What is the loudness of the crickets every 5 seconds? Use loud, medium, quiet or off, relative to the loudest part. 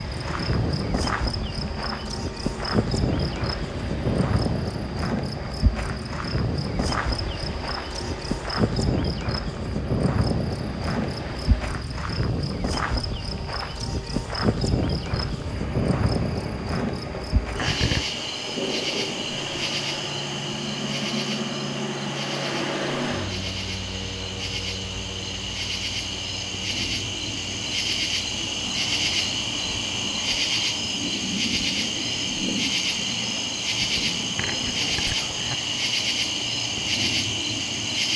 loud, loud, loud, loud, medium, loud, loud, loud.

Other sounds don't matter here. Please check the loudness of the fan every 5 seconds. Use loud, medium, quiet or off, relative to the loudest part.
medium, medium, medium, loud, loud, medium, off, off.